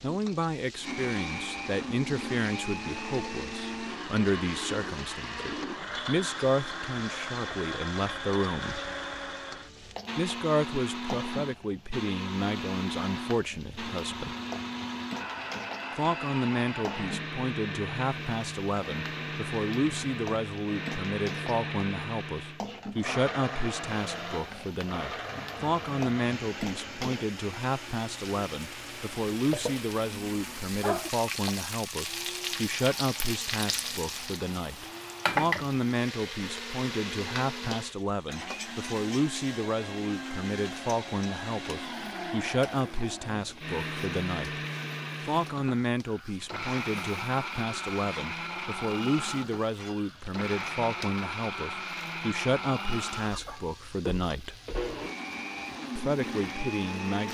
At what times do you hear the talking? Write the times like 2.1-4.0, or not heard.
0.0-8.8, 10.2-14.3, 15.9-44.6, 45.2-54.5, 56.0-57.2.